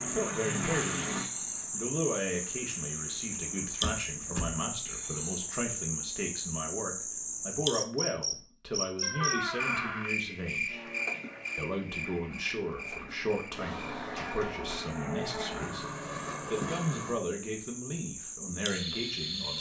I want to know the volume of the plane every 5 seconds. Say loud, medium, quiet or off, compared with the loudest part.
loud, off, medium, loud.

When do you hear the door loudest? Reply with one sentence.
The volume of the door peaks at 9 seconds.